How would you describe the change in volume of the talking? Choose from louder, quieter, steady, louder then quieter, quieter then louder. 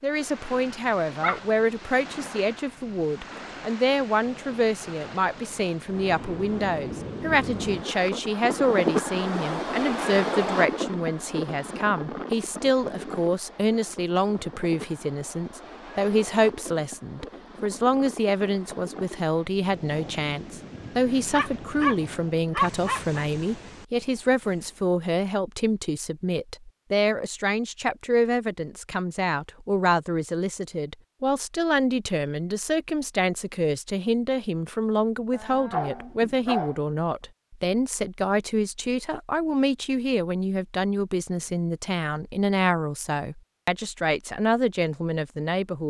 steady.